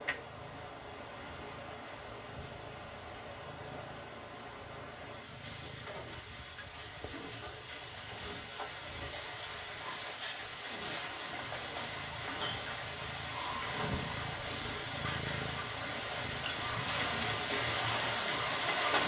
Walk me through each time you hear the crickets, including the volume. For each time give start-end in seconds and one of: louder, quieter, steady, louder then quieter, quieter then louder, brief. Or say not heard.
0.0-19.0 louder.